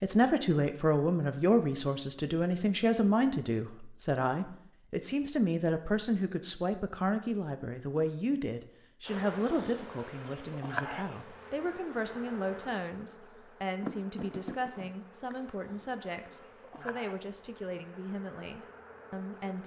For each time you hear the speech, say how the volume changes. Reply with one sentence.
You can hear the speech from 0.0 to 19.6 s, getting quieter.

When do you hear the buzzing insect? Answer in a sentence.
You can hear the buzzing insect from 9.1 to 19.6 s.